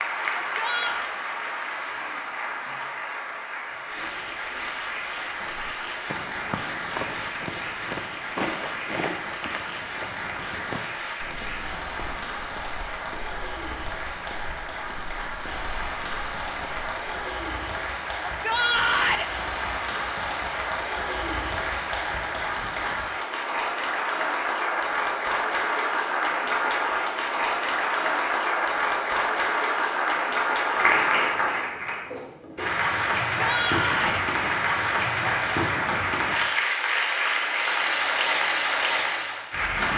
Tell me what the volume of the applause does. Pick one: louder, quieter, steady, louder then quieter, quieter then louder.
louder.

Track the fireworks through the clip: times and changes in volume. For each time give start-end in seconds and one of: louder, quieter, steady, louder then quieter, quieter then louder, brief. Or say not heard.
not heard.